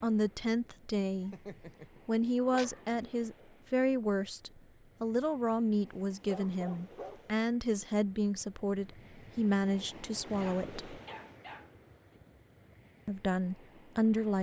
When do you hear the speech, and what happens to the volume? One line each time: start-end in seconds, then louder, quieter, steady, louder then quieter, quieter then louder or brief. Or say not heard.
0.0-1.4 brief
2.0-11.0 steady
13.1-14.3 brief.